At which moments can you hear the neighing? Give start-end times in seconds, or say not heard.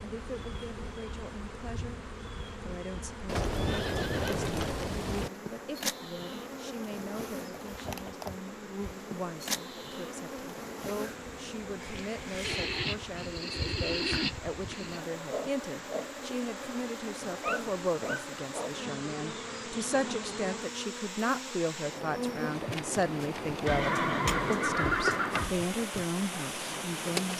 3.2-5.3, 12.4-15.1, 23.6-25.6.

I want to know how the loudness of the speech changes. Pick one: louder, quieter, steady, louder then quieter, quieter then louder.
louder.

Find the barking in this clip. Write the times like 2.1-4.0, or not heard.
17.2-18.3.